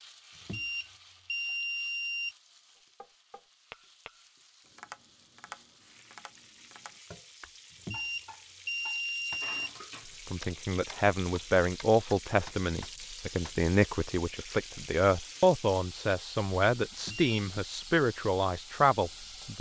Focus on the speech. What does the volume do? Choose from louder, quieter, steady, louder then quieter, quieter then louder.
steady.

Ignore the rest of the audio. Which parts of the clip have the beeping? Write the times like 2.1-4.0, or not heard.
0.3-2.4, 7.7-9.7, 16.9-17.4.